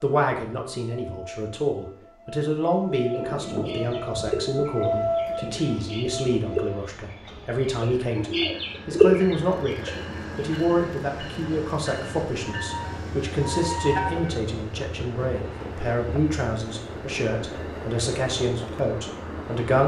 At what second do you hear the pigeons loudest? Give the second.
9 s.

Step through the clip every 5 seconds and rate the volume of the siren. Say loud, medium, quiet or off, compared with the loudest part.
loud, loud, loud, off.